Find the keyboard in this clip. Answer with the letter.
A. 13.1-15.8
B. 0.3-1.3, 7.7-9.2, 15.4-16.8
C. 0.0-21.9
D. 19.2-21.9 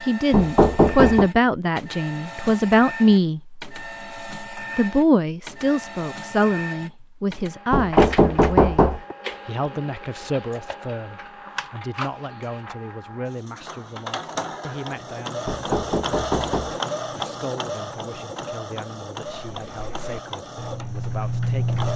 D.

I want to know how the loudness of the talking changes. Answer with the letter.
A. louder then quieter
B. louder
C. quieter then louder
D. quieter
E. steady
D.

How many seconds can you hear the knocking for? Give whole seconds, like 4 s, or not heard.
4 s.